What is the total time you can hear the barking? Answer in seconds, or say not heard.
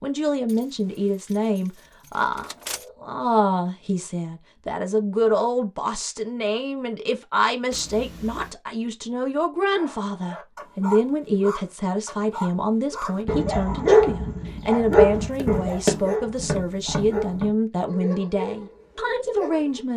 10 s.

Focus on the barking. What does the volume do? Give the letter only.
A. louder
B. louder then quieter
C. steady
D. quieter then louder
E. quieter
B.